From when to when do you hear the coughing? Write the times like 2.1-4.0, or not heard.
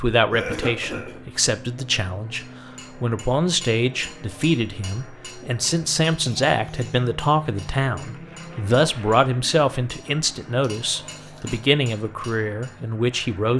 0.3-1.2, 6.0-7.0, 10.8-11.6.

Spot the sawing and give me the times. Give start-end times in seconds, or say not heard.
not heard.